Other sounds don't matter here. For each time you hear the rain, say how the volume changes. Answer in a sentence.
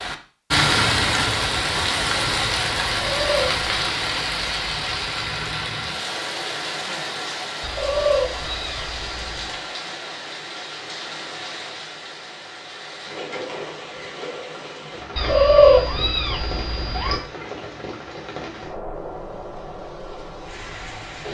You can hear the rain from 0.0 to 21.2 s, getting quieter.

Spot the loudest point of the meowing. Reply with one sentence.
The loudest moment of the meowing is at 16 seconds.